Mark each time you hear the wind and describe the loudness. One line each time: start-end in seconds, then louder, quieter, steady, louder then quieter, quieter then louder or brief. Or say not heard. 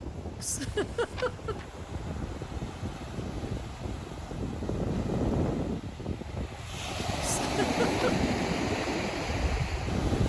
0.0-10.2 louder.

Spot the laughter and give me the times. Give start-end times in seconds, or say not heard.
0.4-1.6, 7.2-8.2.